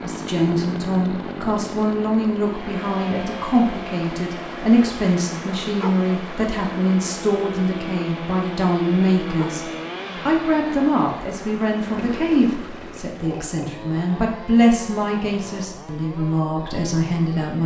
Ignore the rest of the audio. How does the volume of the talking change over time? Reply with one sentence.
The loudness of the talking stays about the same.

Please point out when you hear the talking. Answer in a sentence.
You can hear the talking from 0.0 to 17.6 s.